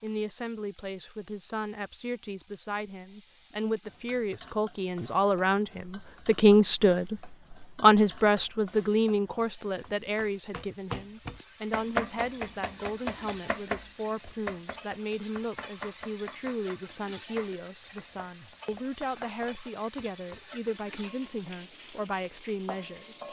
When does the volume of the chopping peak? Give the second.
12 s.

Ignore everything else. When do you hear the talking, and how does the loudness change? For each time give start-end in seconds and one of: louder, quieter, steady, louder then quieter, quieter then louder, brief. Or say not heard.
0.0-23.2 louder then quieter.